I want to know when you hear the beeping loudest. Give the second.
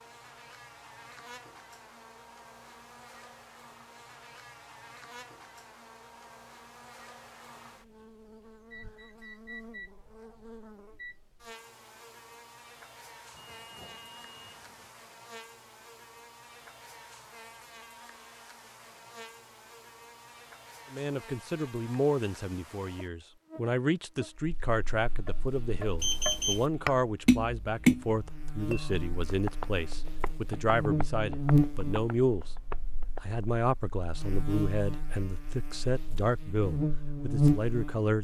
26 s.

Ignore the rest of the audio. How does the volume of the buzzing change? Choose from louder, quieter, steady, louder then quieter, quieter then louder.
louder.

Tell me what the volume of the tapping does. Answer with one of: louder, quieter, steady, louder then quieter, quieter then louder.
louder then quieter.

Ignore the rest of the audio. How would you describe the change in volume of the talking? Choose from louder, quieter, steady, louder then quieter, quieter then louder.
steady.